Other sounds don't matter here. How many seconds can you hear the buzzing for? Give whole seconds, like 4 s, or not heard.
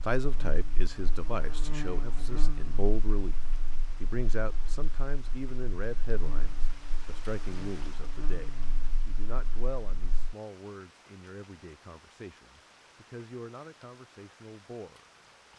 10 s.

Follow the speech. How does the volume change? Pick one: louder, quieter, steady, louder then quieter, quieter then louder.
quieter.